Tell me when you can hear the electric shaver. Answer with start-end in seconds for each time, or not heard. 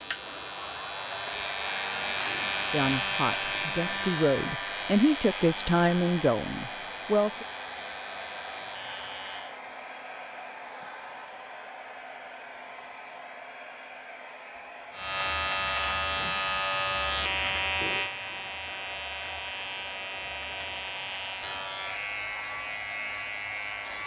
0.0-9.6, 14.9-24.0.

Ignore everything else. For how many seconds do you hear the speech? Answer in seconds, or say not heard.
5 s.